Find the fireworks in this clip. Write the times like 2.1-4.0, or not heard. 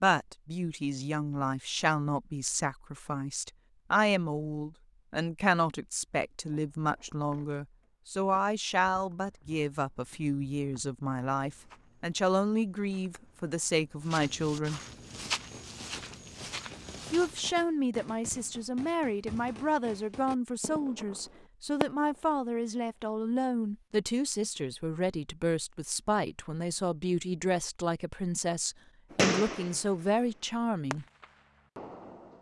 15.1-22.3, 29.1-32.3.